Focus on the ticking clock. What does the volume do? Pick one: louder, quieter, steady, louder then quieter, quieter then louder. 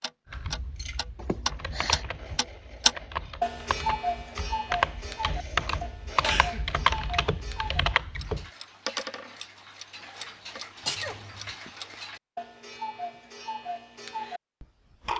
quieter.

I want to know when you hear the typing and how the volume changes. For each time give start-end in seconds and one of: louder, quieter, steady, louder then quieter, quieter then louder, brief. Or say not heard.
0.3-8.4 louder.